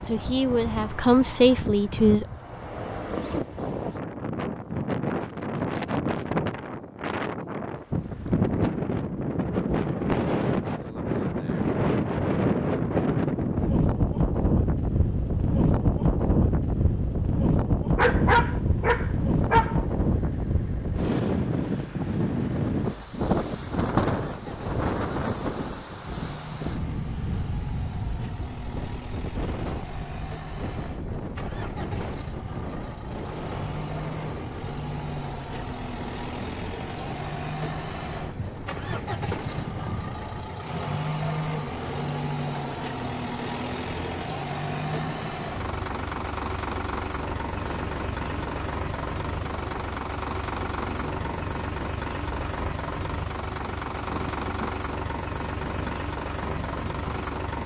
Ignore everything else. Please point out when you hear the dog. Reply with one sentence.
The dog can be heard from 17.9 to 19.9 s.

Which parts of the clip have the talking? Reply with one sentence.
You can hear the talking from 0.0 to 2.2 s.